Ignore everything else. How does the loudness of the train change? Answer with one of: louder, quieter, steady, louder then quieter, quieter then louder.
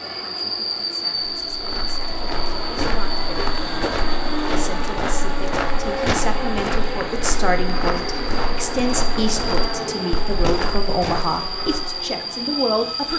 steady.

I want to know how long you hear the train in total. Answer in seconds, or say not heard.
13 s.